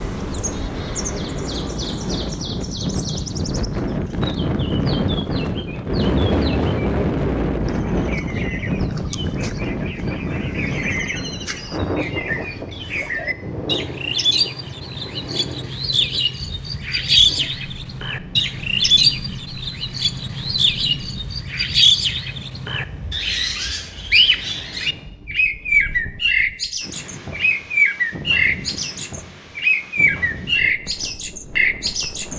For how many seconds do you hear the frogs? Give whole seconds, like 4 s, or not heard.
not heard.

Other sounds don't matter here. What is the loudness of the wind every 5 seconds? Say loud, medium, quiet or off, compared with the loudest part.
loud, loud, medium, quiet, quiet, quiet, quiet.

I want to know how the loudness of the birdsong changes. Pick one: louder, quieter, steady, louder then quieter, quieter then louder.
louder.